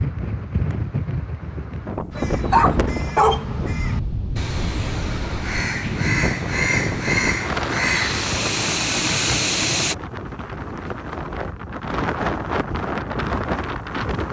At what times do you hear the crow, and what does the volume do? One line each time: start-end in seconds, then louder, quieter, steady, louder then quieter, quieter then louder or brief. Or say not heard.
2.1-9.9 louder.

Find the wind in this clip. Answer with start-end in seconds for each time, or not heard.
0.0-14.2.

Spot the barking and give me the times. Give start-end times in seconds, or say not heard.
2.1-3.5.